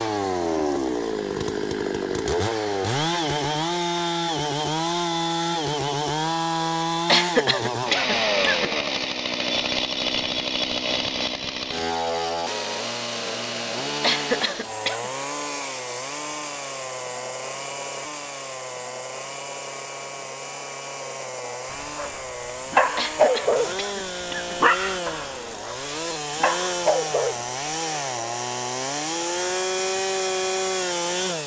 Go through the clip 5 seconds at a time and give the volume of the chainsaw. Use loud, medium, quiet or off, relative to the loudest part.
loud, loud, loud, medium, medium, loud, loud.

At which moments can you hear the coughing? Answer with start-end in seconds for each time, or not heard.
7.0-8.7, 14.0-15.1, 22.9-24.6.